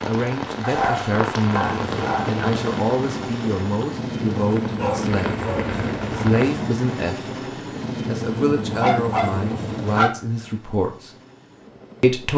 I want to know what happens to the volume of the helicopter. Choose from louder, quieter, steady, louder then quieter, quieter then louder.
quieter.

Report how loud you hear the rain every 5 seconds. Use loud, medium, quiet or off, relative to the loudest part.
loud, loud, off.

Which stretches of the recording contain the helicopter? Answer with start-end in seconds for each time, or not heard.
1.6-12.3.